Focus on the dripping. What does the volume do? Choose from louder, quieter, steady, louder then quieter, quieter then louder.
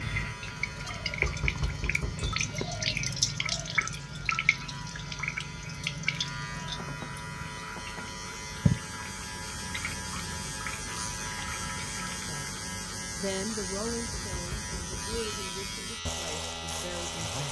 quieter.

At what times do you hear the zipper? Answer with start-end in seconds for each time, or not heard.
not heard.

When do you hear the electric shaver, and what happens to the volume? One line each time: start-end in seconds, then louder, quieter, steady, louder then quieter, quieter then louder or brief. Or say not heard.
0.0-17.4 louder.